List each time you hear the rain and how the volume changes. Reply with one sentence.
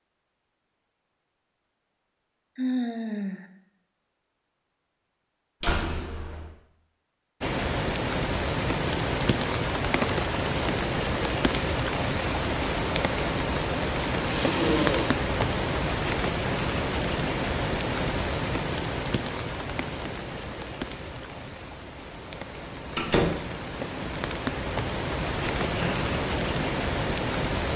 You can hear the rain from 7.4 to 27.7 s, getting quieter then louder.